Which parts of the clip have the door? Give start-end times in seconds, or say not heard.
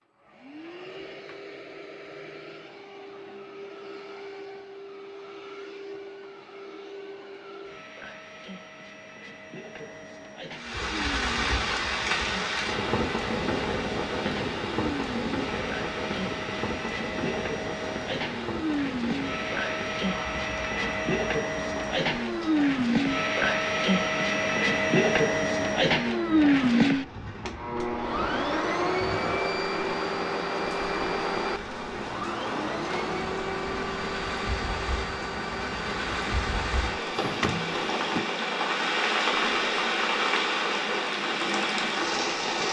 37.1-38.2.